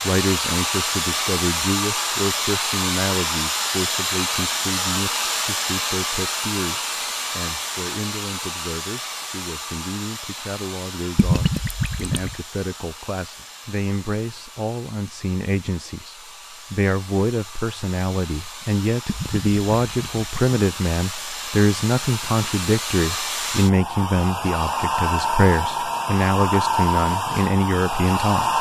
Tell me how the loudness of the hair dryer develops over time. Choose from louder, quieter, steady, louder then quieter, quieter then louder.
quieter then louder.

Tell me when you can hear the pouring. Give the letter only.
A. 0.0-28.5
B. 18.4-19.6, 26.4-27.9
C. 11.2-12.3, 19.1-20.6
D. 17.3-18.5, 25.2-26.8
C.